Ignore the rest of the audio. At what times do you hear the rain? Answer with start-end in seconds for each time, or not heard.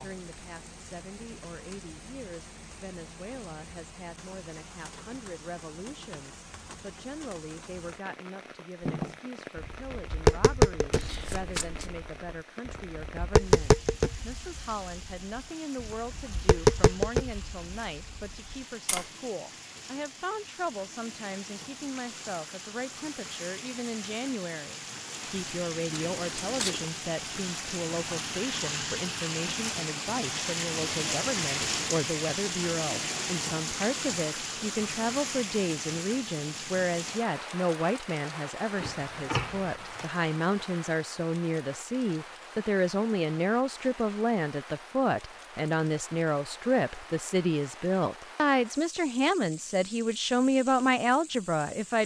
0.0-52.0.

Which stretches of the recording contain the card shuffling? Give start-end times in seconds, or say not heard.
10.9-12.0, 25.9-26.9, 38.8-40.1.